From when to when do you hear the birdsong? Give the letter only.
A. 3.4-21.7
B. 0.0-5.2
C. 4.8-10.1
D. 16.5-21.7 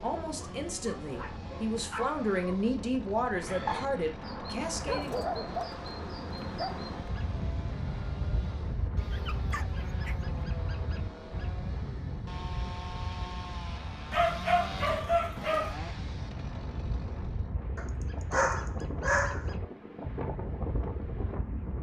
A.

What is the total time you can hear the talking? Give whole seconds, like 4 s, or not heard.
5 s.